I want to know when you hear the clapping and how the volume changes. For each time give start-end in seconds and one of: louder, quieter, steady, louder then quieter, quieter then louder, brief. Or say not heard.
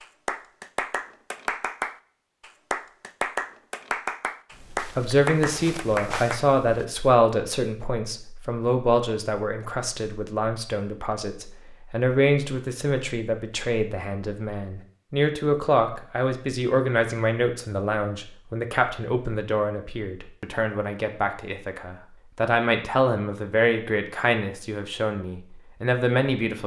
0.0-6.5 steady.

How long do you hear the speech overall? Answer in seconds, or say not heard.
22 s.